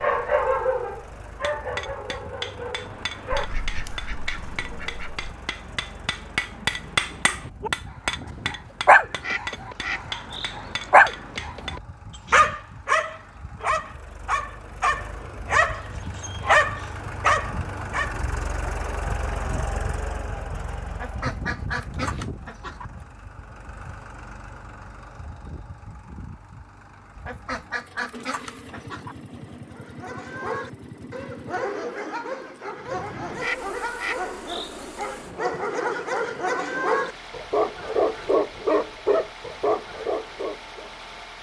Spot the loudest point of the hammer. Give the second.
7 s.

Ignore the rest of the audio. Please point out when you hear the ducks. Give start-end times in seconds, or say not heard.
3.3-5.3, 9.2-10.9, 20.9-22.9, 27.1-29.1, 33.4-35.0.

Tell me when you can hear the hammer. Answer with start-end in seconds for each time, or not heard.
1.4-11.8.